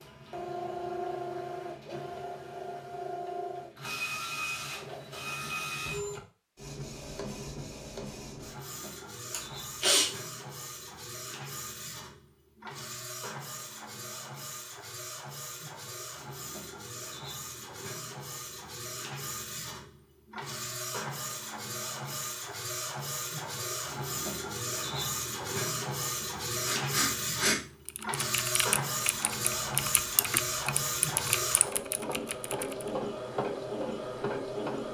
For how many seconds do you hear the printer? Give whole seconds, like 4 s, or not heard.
35 s.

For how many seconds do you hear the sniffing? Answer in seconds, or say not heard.
2 s.